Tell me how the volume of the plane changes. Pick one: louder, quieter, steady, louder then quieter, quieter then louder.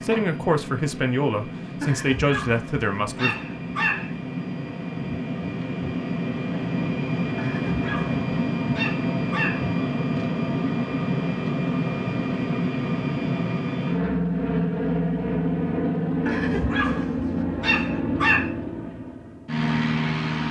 louder.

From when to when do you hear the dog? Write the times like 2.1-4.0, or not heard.
1.8-4.2, 7.3-9.7, 16.2-18.6.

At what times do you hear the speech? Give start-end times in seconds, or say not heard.
0.0-3.4.